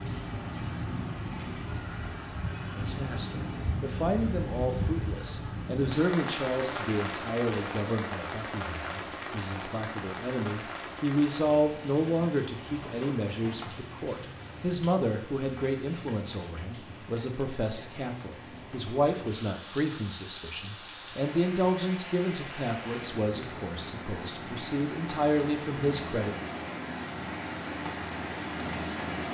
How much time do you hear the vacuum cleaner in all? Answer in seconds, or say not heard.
not heard.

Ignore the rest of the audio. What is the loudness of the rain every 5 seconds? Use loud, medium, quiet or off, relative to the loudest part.
loud, loud, medium, medium, medium, loud.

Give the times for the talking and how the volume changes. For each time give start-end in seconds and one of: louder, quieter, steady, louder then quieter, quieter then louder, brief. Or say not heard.
2.8-26.4 steady.